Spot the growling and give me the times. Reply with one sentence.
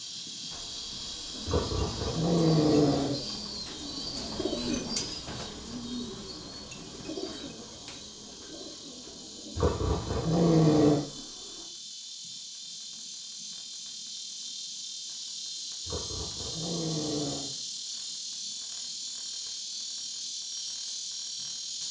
The growling can be heard from 1.4 to 3.1 s, from 9.6 to 11.1 s and from 15.8 to 17.5 s.